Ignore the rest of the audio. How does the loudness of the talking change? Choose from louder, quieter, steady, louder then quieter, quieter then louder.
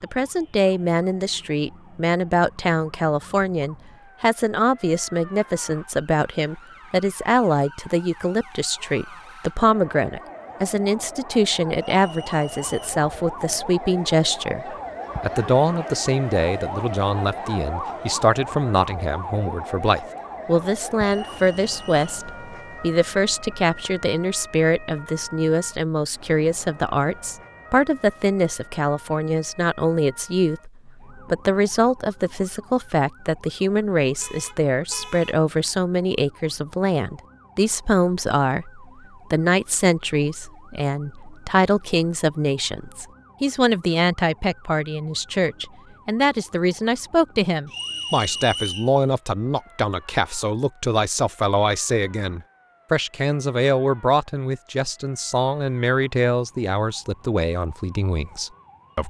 steady.